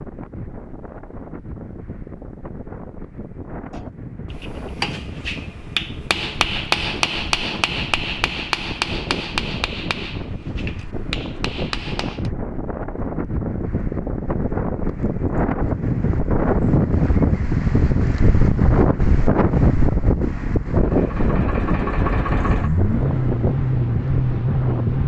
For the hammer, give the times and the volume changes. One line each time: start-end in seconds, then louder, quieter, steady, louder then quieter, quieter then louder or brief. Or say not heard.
3.7-12.3 louder then quieter.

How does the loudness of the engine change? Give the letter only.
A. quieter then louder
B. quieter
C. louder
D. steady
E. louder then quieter
C.